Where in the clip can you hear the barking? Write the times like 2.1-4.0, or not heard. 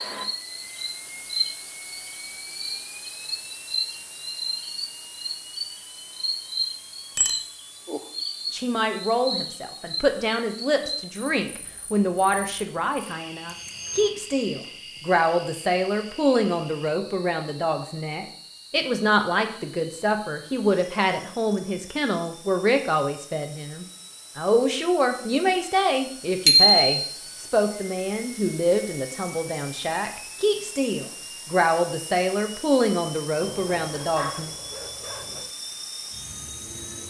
33.4-35.5.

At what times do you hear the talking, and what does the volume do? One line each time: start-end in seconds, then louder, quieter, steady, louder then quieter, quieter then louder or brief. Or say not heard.
8.5-34.5 steady.